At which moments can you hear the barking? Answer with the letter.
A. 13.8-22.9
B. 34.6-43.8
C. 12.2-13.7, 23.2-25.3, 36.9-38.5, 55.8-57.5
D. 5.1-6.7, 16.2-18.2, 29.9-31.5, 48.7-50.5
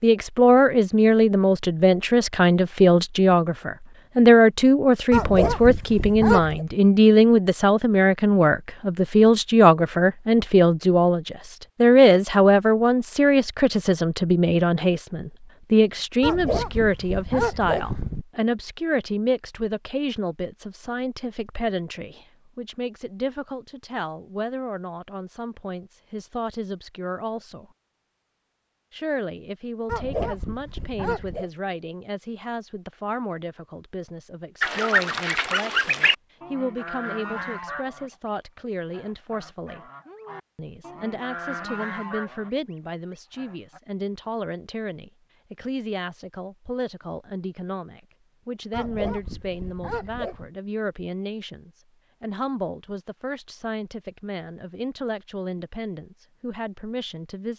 D.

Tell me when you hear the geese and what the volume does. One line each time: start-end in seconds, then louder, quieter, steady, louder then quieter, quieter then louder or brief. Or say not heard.
34.6-43.8 quieter then louder.